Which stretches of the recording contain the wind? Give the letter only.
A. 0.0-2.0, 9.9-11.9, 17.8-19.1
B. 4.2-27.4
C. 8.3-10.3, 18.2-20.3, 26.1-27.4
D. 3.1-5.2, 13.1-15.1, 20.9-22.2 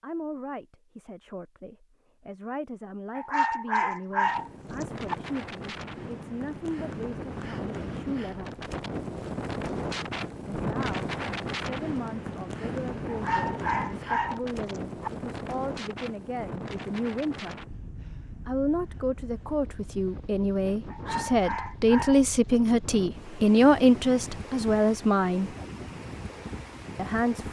B.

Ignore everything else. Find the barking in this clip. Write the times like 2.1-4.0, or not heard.
3.1-5.2, 13.1-15.1, 20.9-22.2.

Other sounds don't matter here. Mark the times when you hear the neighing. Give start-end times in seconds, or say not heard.
not heard.